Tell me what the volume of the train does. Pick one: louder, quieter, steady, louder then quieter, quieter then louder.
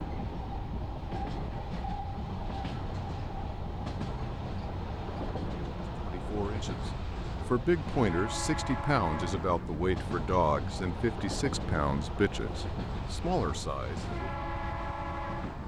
steady.